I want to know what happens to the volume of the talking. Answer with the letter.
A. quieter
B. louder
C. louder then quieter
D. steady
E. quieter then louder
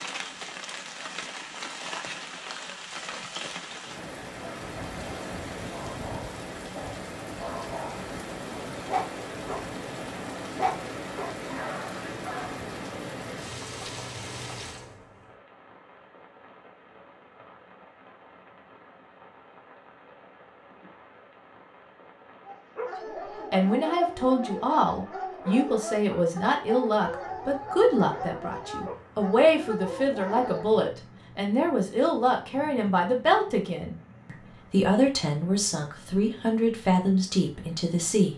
D.